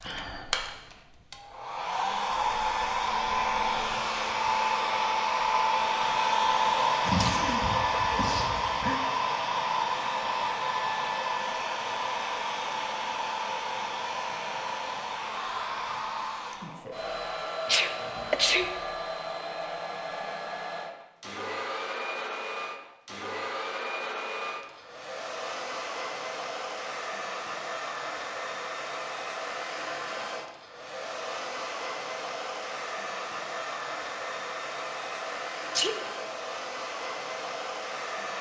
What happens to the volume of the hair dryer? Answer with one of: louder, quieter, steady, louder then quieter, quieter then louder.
quieter.